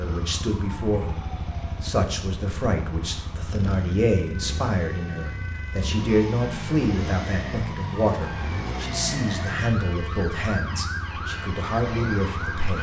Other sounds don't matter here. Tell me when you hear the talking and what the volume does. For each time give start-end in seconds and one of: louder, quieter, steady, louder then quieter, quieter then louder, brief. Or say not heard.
0.0-1.2 brief
1.8-12.7 steady.